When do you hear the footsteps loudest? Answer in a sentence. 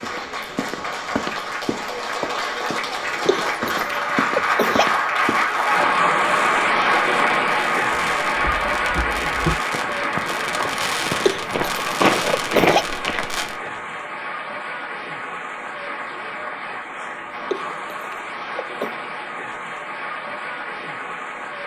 The loudest moment of the footsteps is at 12 seconds.